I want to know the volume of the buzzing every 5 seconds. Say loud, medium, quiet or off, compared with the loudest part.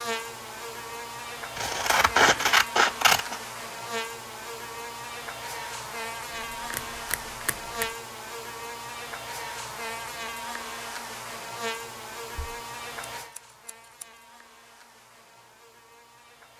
loud, loud, loud, quiet.